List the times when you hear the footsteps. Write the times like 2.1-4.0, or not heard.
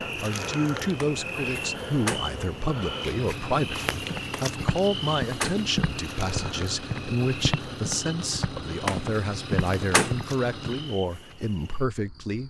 4.1-10.8.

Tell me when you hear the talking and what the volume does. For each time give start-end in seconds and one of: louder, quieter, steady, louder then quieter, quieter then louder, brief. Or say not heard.
0.0-12.4 steady.